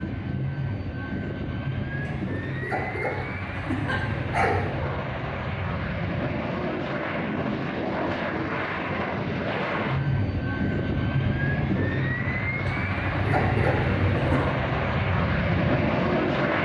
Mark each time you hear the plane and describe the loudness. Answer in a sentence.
You can hear the plane from 0.0 to 16.6 s, getting louder.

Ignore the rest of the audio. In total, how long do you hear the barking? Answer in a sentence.
The barking can be heard for 4 seconds in total.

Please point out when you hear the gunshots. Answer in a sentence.
The gunshots can't be heard in this clip.